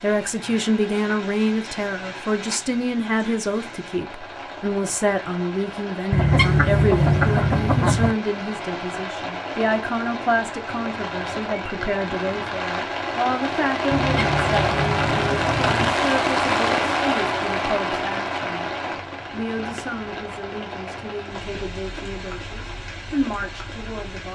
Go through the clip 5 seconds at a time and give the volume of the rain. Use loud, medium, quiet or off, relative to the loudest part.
quiet, medium, loud, loud, quiet.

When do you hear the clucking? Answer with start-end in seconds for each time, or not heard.
6.1-8.2, 13.9-15.9.